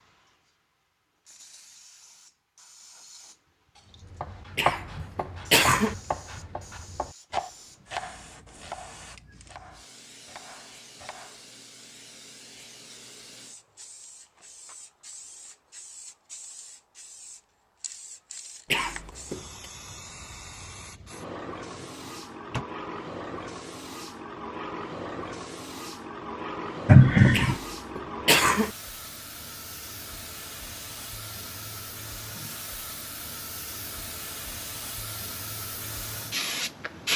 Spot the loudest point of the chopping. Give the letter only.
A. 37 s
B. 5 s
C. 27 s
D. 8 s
B.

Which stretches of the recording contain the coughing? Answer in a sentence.
You can hear the coughing from 4.5 to 6.0 s, from 18.7 to 19.4 s and from 27.3 to 28.7 s.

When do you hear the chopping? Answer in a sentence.
You can hear the chopping from 3.8 to 11.4 s.